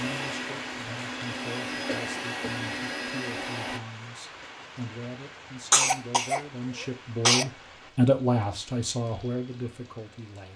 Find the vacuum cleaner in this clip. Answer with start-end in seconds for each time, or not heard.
0.0-3.8.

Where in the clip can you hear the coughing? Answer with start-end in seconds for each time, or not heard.
1.9-2.6, 5.7-7.5.